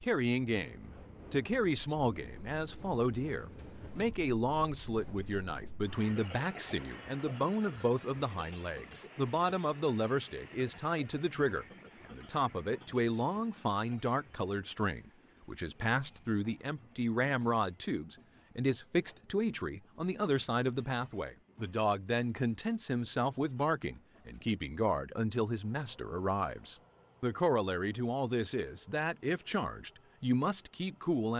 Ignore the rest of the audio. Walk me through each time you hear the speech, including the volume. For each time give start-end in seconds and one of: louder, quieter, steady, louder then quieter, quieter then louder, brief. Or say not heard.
0.0-31.3 steady.